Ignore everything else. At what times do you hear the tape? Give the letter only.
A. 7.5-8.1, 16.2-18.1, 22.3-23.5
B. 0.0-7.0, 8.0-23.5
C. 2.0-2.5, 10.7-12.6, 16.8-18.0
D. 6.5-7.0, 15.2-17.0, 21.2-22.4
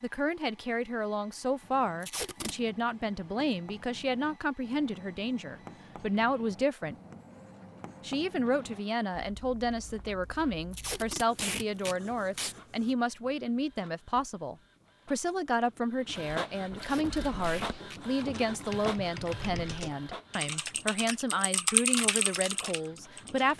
C.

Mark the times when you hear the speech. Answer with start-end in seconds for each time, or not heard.
0.0-7.0, 8.0-23.5.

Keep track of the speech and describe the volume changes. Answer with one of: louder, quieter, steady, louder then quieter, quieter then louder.
steady.